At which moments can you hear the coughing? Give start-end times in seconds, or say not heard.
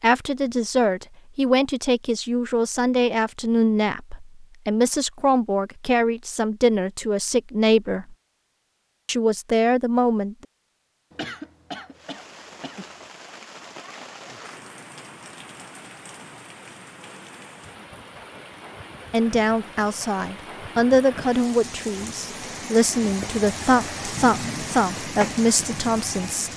11.1-13.1.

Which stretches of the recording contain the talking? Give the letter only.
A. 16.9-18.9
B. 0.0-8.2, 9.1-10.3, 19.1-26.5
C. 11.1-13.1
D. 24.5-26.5
B.